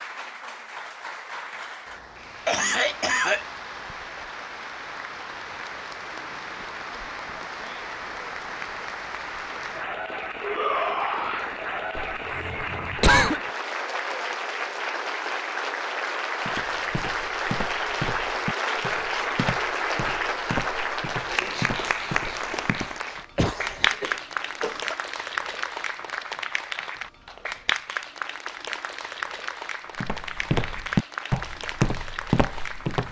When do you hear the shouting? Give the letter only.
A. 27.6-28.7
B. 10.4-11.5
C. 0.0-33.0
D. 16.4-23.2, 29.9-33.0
B.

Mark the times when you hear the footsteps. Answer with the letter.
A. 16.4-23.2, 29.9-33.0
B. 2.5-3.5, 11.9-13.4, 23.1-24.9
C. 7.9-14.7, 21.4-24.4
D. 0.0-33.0
A.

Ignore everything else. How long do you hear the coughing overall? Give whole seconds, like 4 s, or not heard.
4 s.